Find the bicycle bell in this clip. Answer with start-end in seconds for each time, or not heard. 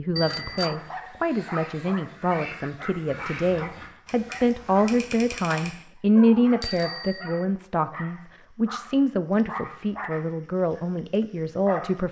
0.1-0.8, 6.6-7.5.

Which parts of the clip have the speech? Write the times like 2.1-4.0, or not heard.
0.0-12.0.